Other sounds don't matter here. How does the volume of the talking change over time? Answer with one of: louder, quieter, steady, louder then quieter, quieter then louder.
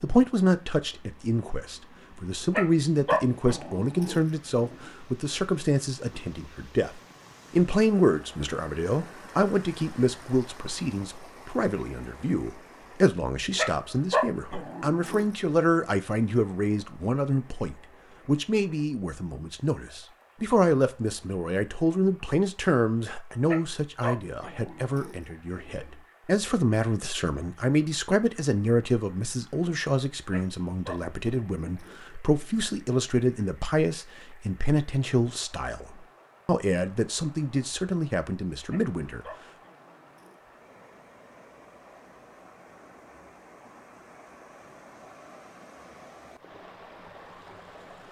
steady.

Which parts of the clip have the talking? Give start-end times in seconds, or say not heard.
0.0-39.2.